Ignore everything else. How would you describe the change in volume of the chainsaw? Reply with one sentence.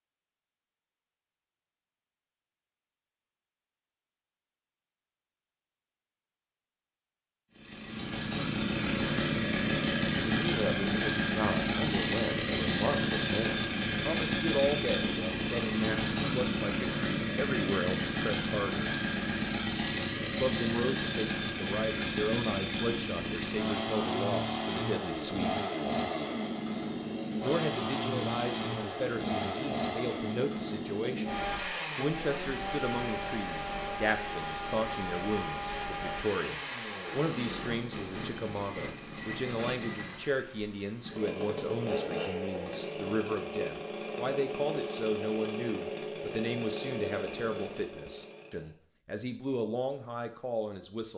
The loudness of the chainsaw goes down.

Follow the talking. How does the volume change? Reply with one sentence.
The loudness of the talking stays about the same.